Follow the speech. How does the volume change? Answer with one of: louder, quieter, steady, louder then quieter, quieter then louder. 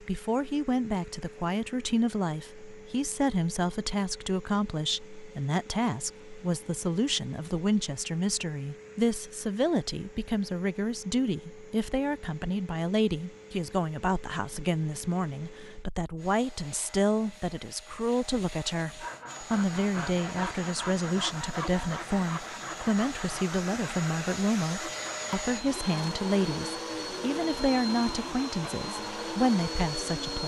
steady.